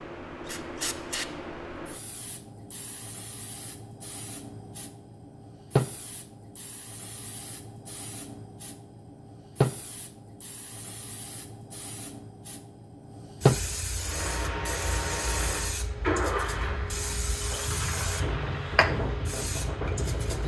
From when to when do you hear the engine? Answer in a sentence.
You can hear the engine from 13.9 to 20.4 s.